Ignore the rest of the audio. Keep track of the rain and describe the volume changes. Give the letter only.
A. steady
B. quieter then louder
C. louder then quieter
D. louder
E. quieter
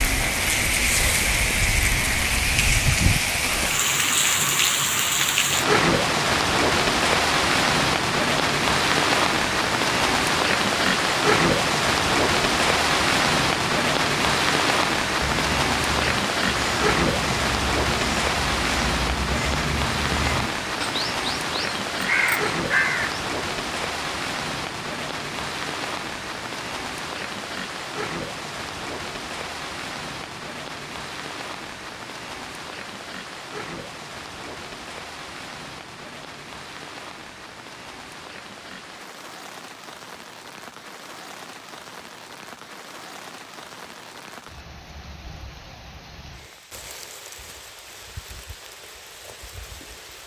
E.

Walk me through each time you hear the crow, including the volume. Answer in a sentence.
The crow can be heard from 15.2 to 23.2 s, getting louder.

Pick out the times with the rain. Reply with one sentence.
You can hear the rain from 0.0 to 50.2 s.